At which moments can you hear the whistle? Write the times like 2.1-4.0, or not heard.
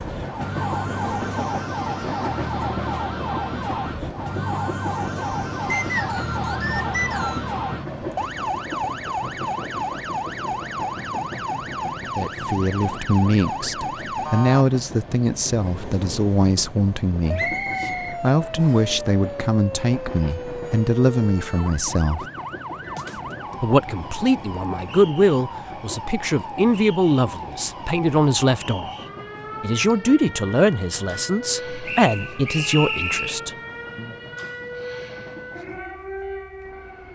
5.7-7.5, 17.4-18.9, 31.9-33.4.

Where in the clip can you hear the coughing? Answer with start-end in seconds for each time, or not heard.
not heard.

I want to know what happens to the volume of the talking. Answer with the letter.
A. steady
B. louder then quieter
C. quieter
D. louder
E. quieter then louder
A.